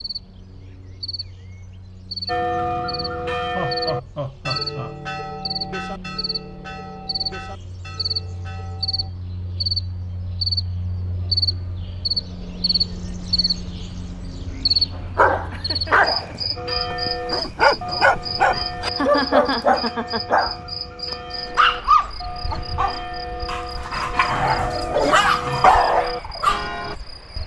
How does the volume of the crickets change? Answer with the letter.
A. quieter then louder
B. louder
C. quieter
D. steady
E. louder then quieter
E.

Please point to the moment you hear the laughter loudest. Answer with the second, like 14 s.
19 s.